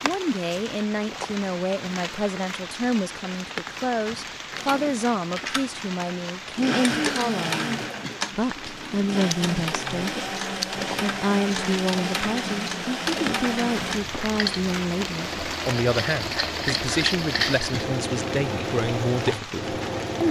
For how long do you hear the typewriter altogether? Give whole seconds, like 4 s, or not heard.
not heard.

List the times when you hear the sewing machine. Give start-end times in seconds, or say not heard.
4.5-20.2.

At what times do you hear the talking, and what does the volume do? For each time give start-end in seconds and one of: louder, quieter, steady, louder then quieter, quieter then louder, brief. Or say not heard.
0.0-10.2 steady
11.0-20.2 steady.